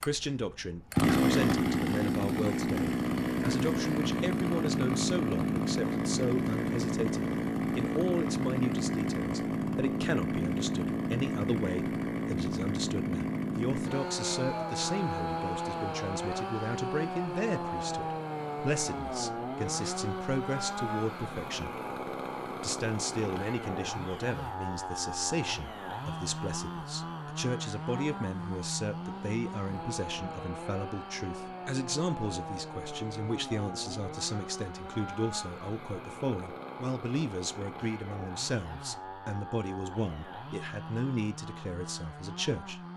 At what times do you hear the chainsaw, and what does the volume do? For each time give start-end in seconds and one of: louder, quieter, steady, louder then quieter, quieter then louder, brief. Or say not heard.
0.0-42.9 quieter.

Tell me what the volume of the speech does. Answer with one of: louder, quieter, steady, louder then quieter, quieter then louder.
steady.